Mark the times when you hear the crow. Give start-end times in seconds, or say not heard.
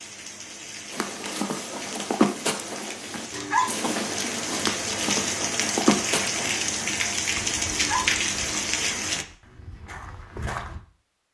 not heard.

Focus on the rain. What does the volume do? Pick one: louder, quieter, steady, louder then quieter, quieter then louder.
louder.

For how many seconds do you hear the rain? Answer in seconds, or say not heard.
9 s.